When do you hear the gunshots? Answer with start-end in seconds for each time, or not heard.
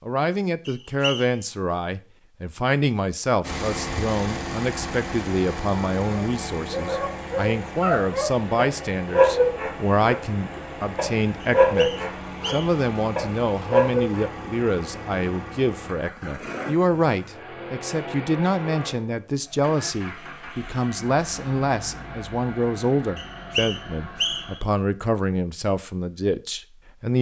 not heard.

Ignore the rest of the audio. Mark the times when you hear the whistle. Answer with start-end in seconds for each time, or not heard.
0.7-1.4, 11.4-12.8, 23.1-24.6.